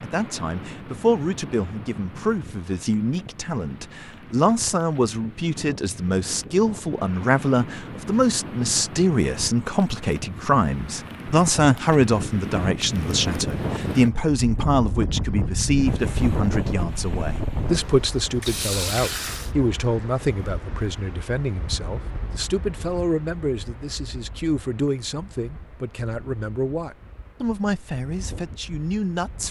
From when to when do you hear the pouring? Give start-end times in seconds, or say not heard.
18.2-19.5.